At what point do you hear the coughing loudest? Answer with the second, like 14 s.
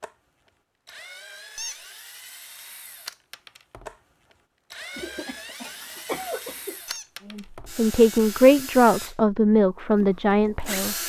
6 s.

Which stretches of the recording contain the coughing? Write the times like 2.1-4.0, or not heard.
4.9-6.8.